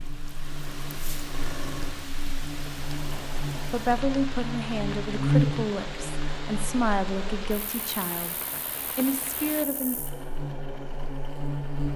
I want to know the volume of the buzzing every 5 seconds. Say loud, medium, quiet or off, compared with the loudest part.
medium, loud, medium.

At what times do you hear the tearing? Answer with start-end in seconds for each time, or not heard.
not heard.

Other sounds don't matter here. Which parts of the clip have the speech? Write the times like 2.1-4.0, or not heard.
3.5-9.9.